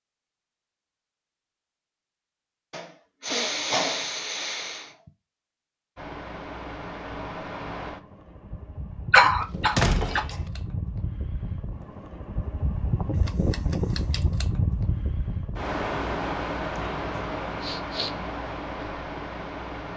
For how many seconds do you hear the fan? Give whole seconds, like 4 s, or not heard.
14 s.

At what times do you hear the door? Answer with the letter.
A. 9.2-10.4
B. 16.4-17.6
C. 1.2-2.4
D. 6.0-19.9
A.